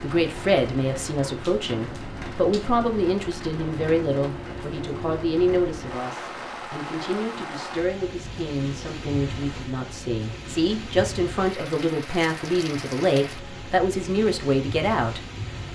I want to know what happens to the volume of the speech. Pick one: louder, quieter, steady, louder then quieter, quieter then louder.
quieter then louder.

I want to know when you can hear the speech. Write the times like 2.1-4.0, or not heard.
0.0-15.2.